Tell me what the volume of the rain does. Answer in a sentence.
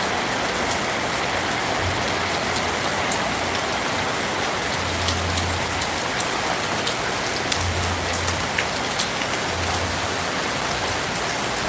The volume of the rain stays about the same.